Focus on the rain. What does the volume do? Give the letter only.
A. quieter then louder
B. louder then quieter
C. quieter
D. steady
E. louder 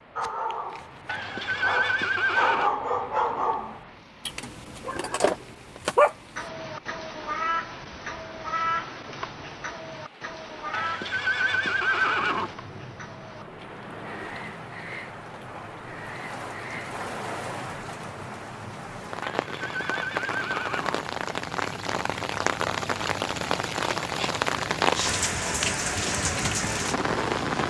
E.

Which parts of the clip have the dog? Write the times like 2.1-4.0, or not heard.
0.1-6.2.